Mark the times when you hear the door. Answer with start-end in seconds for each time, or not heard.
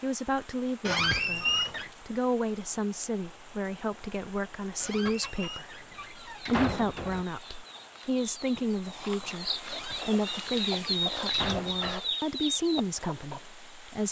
0.8-1.9, 4.8-7.2, 9.7-12.0.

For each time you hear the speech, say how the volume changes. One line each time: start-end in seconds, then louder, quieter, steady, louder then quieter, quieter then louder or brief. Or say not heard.
0.0-14.0 steady.